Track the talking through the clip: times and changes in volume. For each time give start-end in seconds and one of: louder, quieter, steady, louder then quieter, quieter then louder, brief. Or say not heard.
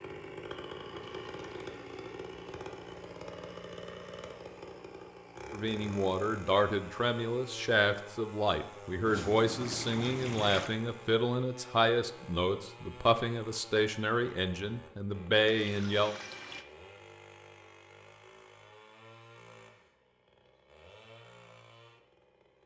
5.5-16.1 steady.